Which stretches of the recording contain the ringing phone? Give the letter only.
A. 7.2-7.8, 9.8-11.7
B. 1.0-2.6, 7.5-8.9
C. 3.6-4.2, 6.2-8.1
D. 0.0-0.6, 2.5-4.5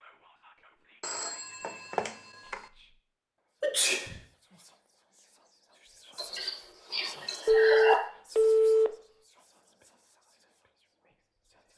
B.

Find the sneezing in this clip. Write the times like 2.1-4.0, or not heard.
3.6-4.2, 6.2-8.1.